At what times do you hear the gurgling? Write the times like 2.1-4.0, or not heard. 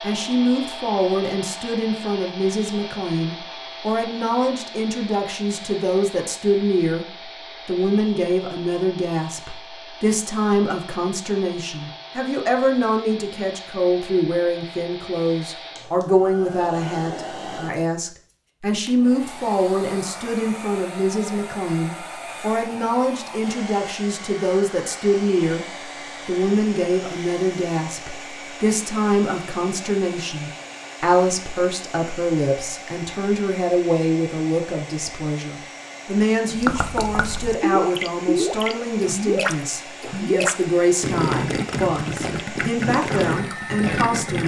36.5-44.4.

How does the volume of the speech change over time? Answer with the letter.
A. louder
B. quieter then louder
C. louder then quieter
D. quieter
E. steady
E.